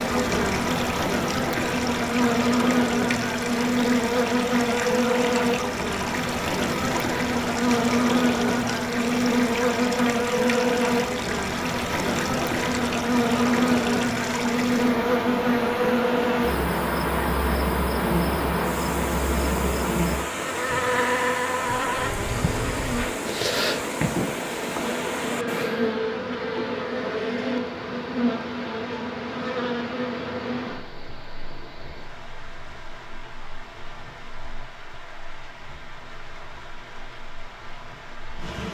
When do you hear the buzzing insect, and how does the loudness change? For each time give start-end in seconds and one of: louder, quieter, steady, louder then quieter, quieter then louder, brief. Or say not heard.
0.0-38.6 quieter.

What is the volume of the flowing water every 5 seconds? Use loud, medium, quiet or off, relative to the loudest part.
loud, loud, loud, loud, loud, medium, quiet, quiet.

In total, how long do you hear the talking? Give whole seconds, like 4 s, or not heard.
not heard.